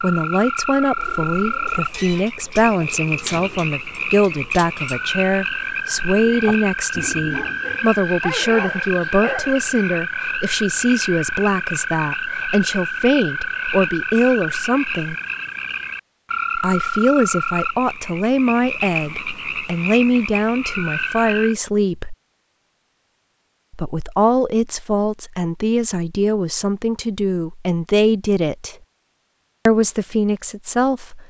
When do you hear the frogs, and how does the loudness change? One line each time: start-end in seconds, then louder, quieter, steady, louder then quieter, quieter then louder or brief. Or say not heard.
0.0-21.6 steady.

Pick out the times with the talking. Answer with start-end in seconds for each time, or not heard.
0.0-15.2, 16.6-22.1, 23.7-28.8, 29.6-31.2.